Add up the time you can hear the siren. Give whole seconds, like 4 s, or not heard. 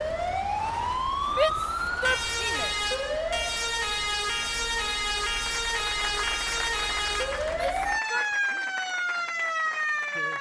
10 s.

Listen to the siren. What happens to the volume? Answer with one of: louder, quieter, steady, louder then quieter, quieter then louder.
steady.